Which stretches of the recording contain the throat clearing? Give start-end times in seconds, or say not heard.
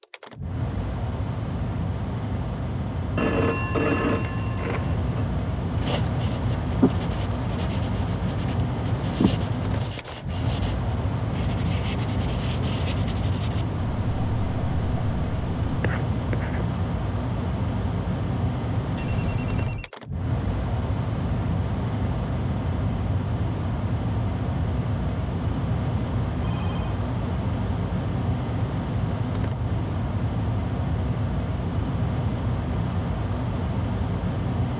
not heard.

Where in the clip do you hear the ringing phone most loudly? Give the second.
4 s.